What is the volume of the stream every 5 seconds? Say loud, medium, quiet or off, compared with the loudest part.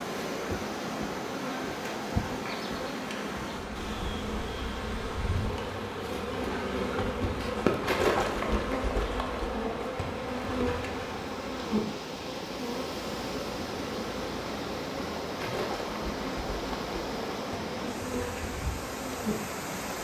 loud, medium, loud, loud.